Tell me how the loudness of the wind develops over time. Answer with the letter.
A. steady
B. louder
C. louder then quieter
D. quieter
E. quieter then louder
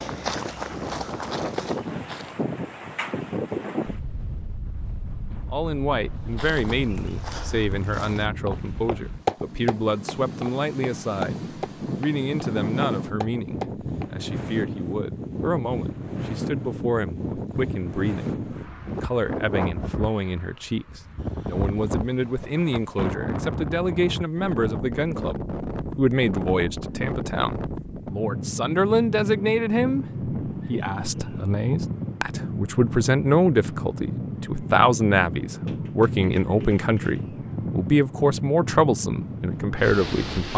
A.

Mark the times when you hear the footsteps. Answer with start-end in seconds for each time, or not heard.
0.0-2.5, 6.2-14.1.